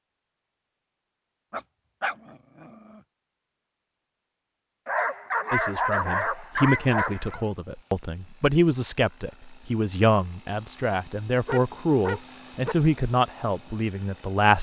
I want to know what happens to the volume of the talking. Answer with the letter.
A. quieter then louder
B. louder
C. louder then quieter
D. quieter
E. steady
E.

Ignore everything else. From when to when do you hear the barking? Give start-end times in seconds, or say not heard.
1.5-3.0, 4.8-7.5, 11.4-12.8.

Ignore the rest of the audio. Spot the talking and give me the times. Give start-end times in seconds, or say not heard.
5.5-14.5.